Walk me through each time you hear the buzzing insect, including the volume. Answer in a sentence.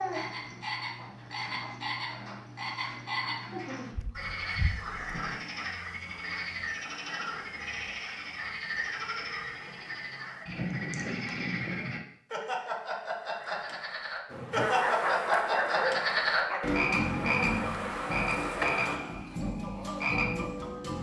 The buzzing insect can be heard from 14.2 to 19.0 s, getting quieter then louder.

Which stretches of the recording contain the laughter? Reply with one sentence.
You can't hear the laughter here.